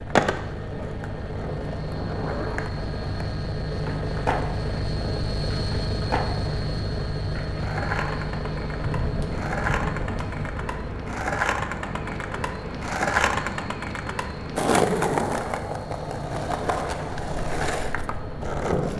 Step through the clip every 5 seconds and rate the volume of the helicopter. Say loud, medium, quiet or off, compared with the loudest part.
loud, loud, medium, medium.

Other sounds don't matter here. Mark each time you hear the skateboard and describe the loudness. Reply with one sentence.
You can hear the skateboard from 0.1 to 18.9 s, getting louder.